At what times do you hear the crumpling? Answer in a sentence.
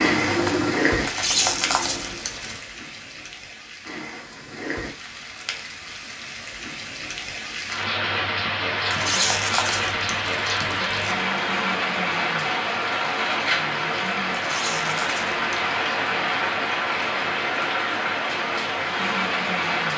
The crumpling can be heard from 1.0 to 2.6 s, from 8.8 to 11.2 s and from 14.3 to 15.4 s.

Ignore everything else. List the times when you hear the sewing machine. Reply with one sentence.
You can hear the sewing machine from 0.1 to 2.2 s.